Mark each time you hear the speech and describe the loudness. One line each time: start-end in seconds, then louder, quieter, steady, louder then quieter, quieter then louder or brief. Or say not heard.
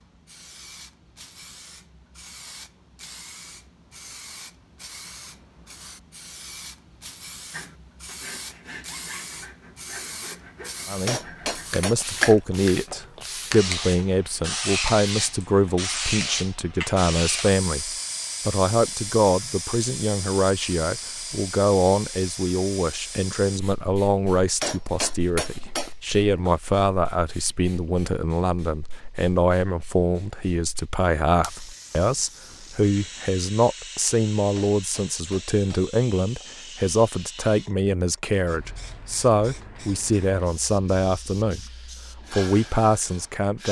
10.8-41.6 steady
42.3-43.6 brief.